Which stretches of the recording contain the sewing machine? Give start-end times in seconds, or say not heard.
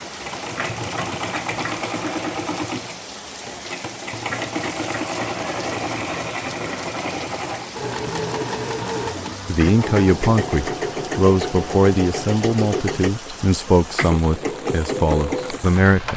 0.0-16.1.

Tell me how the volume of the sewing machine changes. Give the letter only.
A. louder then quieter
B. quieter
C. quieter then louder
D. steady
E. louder
D.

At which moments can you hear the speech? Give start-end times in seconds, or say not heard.
9.4-16.1.